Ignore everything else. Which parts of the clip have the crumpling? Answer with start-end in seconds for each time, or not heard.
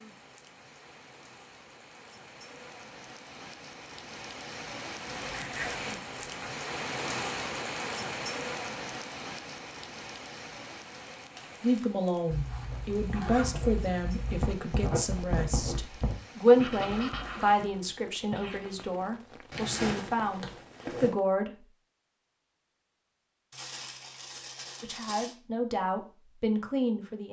11.3-11.9, 23.5-25.4.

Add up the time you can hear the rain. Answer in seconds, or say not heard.
21 s.